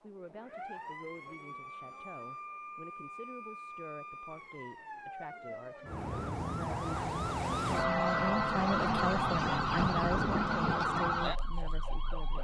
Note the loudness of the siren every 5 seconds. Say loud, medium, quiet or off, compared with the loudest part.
quiet, loud, loud.